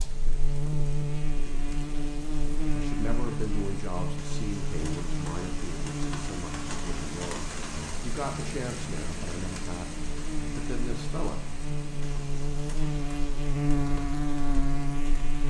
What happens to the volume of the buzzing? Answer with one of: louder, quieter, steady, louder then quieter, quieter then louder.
quieter then louder.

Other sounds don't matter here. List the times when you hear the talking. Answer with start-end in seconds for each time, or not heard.
2.8-11.4.